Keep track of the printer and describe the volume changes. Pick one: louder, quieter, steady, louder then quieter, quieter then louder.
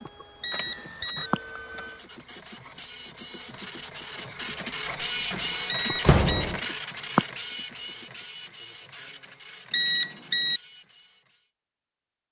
louder then quieter.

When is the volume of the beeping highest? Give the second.
10 s.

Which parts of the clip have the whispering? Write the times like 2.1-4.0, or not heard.
not heard.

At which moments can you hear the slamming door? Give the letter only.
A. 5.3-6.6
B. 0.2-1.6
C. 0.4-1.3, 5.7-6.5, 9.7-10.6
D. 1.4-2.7
A.